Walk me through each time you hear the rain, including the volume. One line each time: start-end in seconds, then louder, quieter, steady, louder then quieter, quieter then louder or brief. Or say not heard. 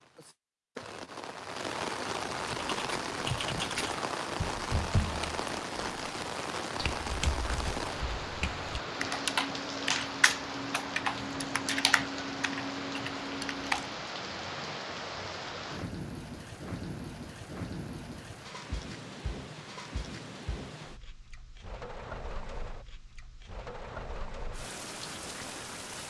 0.0-26.0 quieter.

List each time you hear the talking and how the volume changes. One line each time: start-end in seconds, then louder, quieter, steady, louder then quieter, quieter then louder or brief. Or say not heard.
not heard.